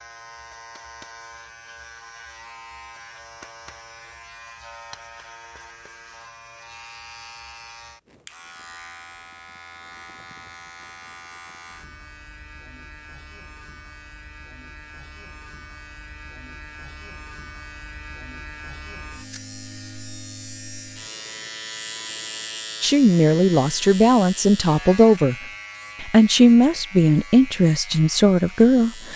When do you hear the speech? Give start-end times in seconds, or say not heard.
22.8-25.4, 26.0-29.1.